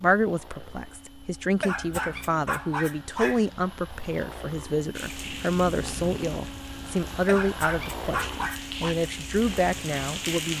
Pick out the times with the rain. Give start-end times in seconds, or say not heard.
5.0-10.5.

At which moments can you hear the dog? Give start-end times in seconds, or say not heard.
1.6-3.5, 7.2-8.9.